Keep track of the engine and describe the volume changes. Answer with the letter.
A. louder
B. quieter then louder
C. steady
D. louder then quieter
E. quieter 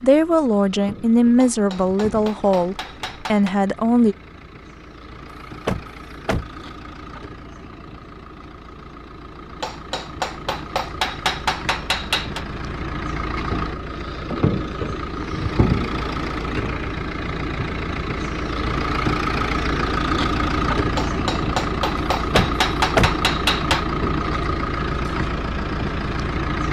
A.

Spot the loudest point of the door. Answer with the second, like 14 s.
23 s.